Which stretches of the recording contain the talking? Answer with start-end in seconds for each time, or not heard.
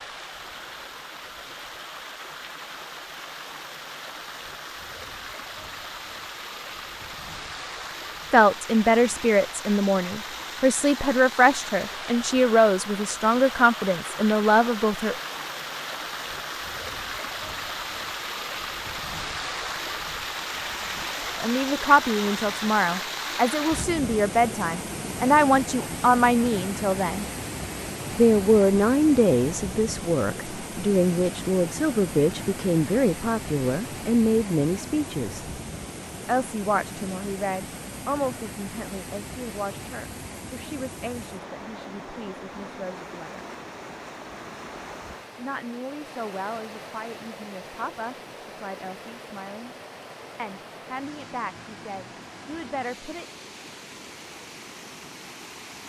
8.3-15.2, 21.4-27.2, 28.1-35.5, 36.2-43.5, 45.4-49.8, 50.4-53.2.